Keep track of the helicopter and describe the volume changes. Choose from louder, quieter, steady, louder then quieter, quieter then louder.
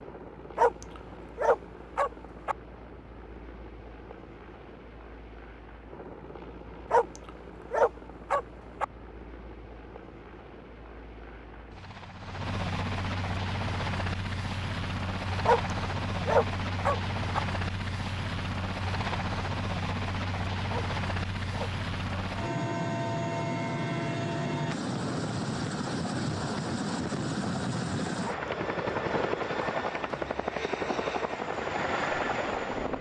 louder.